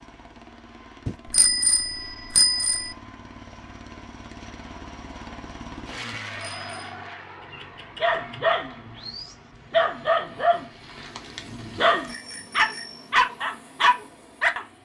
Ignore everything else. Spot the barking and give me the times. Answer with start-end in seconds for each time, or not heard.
7.5-14.6.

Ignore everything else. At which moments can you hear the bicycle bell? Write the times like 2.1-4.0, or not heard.
1.1-3.0, 6.1-6.7, 12.1-13.1.